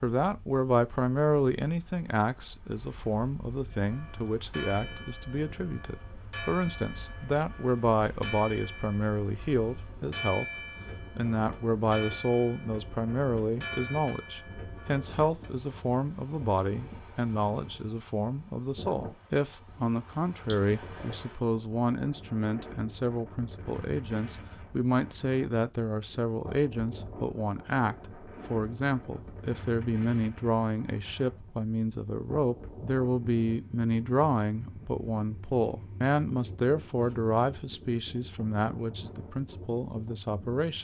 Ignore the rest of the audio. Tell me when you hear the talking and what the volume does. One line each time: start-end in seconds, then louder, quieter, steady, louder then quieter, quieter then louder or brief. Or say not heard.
0.0-40.8 steady.